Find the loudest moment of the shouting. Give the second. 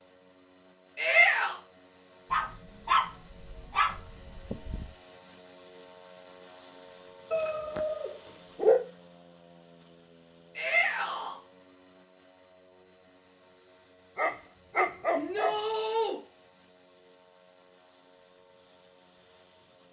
1 s.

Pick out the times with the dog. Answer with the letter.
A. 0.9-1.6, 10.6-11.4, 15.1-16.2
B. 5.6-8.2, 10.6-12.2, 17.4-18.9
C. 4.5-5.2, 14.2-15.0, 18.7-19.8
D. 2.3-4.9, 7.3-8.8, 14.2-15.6
D.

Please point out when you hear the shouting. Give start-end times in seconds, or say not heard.
0.9-1.6, 10.6-11.4, 15.1-16.2.